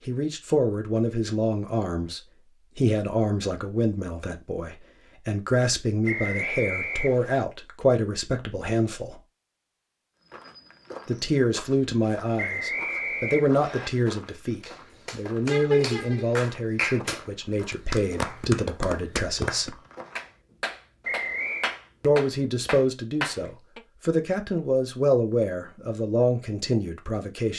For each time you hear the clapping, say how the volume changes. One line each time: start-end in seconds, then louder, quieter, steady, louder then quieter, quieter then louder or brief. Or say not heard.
14.6-23.8 steady.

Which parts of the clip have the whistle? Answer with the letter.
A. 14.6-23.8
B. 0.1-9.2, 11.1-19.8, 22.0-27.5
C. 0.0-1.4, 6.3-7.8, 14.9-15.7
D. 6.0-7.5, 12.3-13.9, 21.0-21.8
D.